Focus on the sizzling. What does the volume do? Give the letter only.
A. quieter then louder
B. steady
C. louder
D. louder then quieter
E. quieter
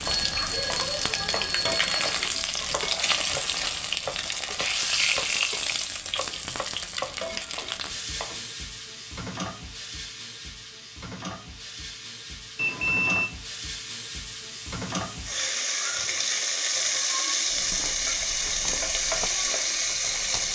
A.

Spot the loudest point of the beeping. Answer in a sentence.
The loudest moment of the beeping is at 13 seconds.